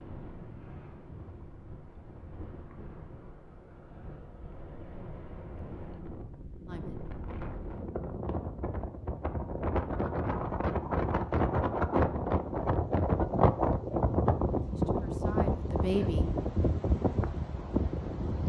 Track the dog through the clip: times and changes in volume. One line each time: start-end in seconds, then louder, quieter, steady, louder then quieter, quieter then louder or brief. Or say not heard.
not heard.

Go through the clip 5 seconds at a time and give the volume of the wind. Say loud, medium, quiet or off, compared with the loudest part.
quiet, medium, loud, loud.